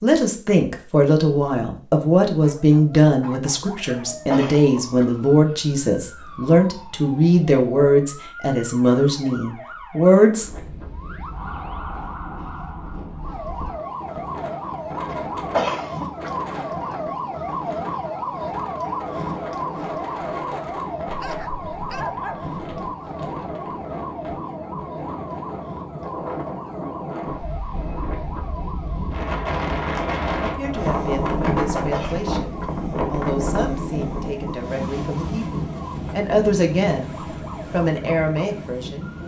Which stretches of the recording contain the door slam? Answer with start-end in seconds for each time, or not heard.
not heard.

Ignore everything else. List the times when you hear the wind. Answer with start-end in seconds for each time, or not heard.
10.3-39.2.